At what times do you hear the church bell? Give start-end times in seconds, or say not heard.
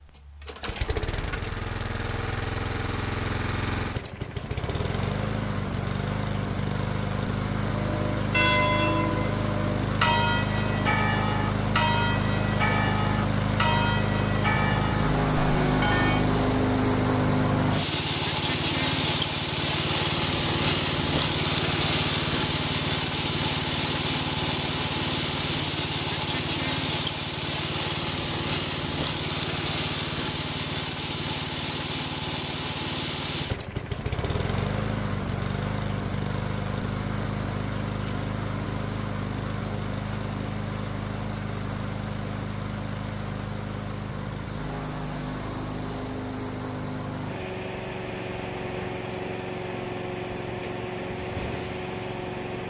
7.7-16.2.